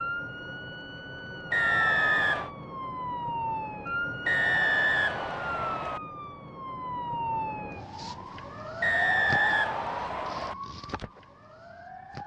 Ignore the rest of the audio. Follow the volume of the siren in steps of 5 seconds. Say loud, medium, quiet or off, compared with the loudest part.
loud, loud, medium.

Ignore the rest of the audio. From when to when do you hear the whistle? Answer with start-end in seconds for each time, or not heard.
1.5-2.5, 4.2-6.0, 8.8-10.6.